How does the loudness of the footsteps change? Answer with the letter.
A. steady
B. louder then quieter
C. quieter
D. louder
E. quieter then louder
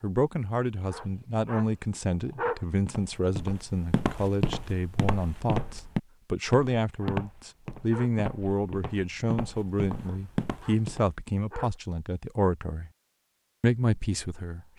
E.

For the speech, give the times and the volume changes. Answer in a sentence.
You can hear the speech from 0.0 to 12.9 s, at a steady volume; and briefly from 13.6 to 14.6 s.